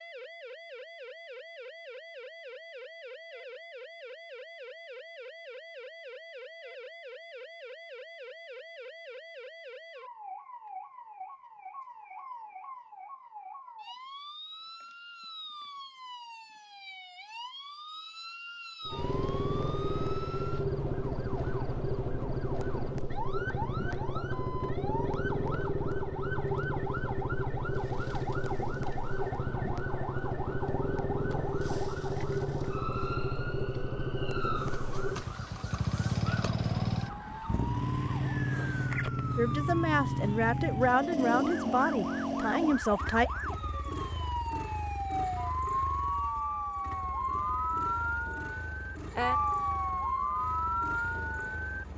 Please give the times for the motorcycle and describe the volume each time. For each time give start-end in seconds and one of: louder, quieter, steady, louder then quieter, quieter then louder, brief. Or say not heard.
18.9-51.9 quieter.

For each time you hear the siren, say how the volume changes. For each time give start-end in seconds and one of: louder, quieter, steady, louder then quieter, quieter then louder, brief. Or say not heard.
0.0-51.9 louder.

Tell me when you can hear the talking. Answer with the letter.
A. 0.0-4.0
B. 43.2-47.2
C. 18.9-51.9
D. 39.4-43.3
D.